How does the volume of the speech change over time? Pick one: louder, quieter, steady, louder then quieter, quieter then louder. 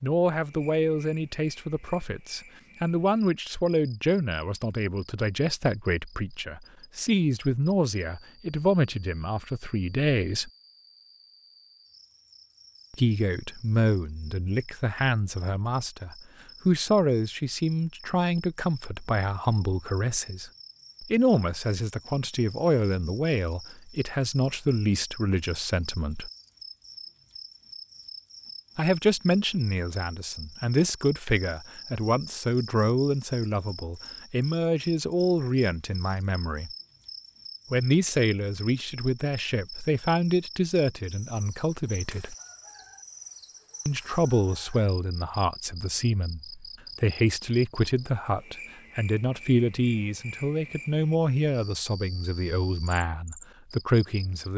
steady.